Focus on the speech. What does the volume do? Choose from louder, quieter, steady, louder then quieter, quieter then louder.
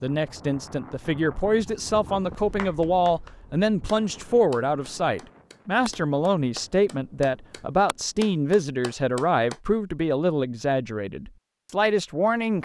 steady.